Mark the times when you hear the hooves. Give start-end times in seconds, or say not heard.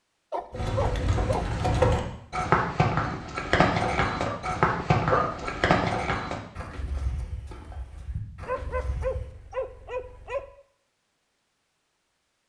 0.5-9.3.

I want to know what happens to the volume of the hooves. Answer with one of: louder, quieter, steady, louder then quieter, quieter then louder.
quieter.